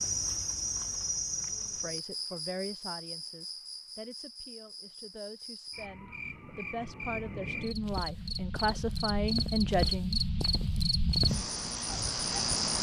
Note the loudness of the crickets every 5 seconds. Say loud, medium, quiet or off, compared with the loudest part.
medium, medium, loud.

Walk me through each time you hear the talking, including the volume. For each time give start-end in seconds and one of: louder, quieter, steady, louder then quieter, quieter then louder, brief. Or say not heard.
1.8-10.2 quieter then louder.